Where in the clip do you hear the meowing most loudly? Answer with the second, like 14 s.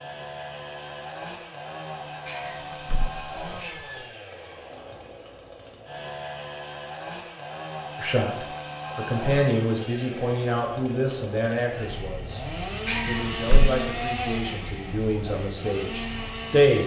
13 s.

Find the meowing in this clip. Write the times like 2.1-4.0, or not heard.
2.2-4.0, 12.8-13.8.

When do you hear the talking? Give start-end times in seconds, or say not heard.
8.0-16.8.